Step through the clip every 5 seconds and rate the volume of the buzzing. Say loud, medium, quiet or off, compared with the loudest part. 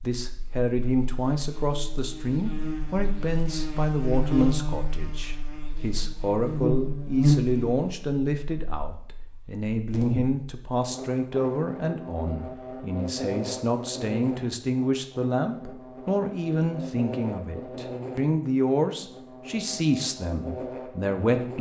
medium, loud, medium, medium, medium.